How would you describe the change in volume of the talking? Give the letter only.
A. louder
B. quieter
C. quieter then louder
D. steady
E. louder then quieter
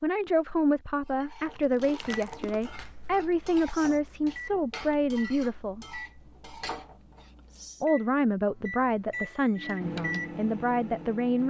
D.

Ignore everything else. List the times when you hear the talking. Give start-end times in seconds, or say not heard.
0.0-6.0, 7.8-11.4.